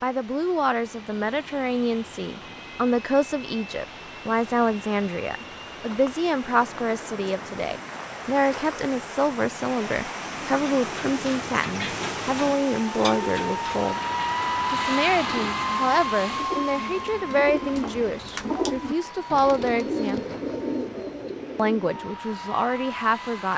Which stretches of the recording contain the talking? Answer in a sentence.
You can hear the talking from 0.0 to 14.0 s, from 14.7 to 20.4 s and from 21.6 to 23.5 s.